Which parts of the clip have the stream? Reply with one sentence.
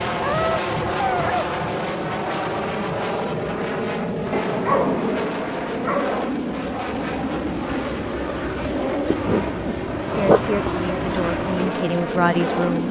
The stream can't be heard in this clip.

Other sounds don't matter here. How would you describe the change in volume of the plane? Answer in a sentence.
The volume of the plane stays about the same.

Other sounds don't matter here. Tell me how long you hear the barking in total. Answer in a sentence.
The barking can be heard for 5 seconds in total.